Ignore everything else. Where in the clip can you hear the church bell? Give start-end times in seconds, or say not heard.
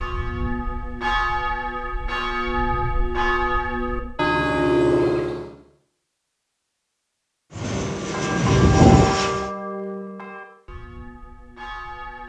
0.0-5.5, 7.8-12.2.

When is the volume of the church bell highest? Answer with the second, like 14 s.
5 s.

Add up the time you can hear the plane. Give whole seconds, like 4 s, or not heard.
2 s.